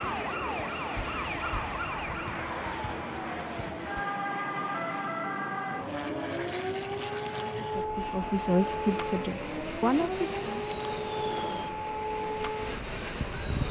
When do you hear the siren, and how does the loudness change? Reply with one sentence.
You can hear the siren from 0.0 to 13.6 s, at a steady volume.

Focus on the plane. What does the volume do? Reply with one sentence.
The loudness of the plane stays about the same.